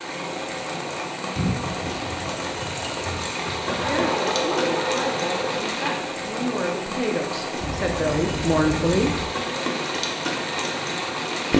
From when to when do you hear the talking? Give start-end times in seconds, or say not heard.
3.6-9.2.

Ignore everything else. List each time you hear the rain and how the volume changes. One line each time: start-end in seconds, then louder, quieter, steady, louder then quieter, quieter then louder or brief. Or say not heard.
0.0-11.5 steady.